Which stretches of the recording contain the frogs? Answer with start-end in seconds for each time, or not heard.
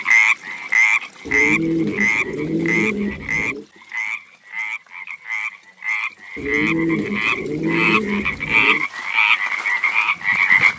0.0-10.7.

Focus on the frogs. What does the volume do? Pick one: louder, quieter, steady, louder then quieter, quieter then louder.
quieter then louder.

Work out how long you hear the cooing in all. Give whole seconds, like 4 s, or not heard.
5 s.